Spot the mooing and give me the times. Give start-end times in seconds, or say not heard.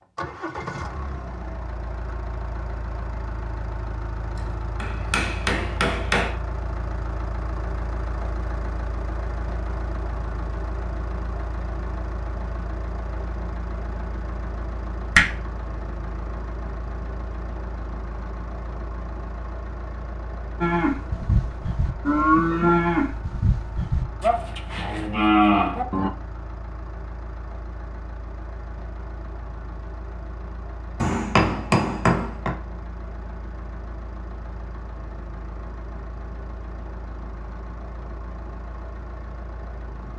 20.6-26.1.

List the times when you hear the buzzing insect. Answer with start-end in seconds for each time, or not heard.
not heard.